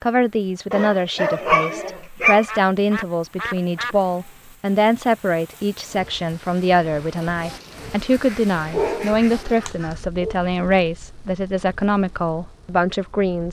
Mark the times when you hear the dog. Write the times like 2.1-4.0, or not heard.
0.7-2.5, 8.7-10.3.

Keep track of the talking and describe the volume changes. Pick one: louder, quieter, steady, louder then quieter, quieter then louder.
steady.